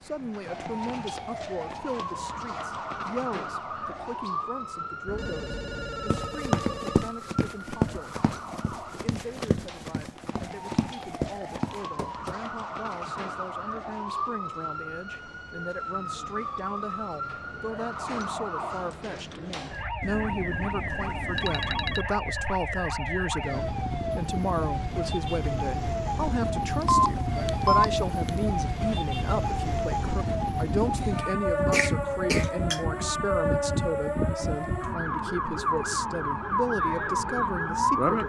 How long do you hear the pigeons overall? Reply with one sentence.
The pigeons can't be heard in this clip.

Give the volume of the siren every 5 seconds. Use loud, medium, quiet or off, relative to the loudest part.
medium, quiet, medium, medium, medium, loud, loud, loud.